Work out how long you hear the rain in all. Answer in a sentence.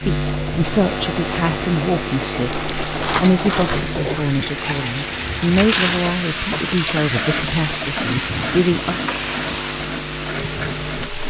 The rain can be heard for 11 seconds in total.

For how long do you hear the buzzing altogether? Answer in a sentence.
You can hear the buzzing for 11 seconds altogether.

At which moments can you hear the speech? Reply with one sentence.
You can hear the speech from 0.0 to 8.9 s.